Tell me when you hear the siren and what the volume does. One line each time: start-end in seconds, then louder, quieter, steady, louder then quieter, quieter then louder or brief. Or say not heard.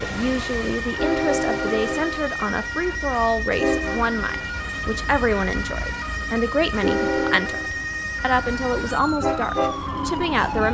0.0-10.6 steady.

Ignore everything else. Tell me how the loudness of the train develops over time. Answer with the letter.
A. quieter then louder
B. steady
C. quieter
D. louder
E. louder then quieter
A.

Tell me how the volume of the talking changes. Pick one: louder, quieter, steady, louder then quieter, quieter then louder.
steady.